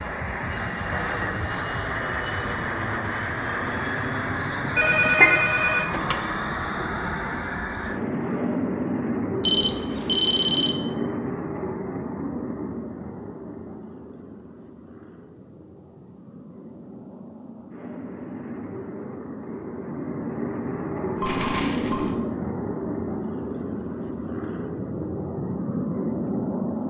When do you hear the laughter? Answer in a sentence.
The laughter can be heard from 4.7 to 5.3 s.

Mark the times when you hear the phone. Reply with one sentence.
You can hear the phone from 4.8 to 6.2 s, from 9.4 to 10.8 s and from 21.1 to 22.1 s.